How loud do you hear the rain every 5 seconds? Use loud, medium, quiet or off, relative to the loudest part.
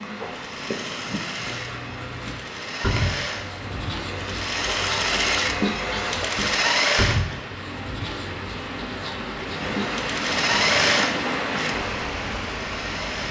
medium, medium, loud.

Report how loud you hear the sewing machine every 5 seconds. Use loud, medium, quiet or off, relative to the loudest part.
medium, loud, loud.